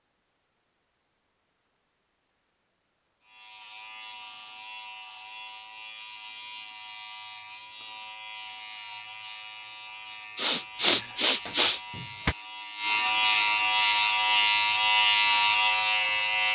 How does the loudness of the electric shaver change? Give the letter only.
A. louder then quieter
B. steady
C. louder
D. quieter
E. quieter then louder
C.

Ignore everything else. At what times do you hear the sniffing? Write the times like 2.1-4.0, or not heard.
10.3-11.8.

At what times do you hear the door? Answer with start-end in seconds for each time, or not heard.
10.9-12.3.